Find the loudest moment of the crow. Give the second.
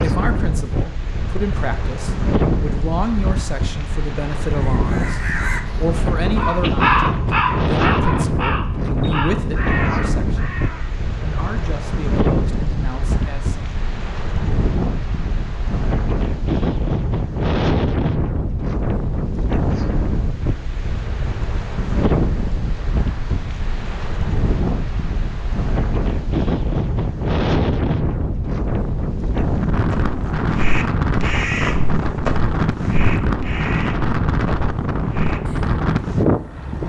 7 s.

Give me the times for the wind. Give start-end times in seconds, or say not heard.
0.0-36.8.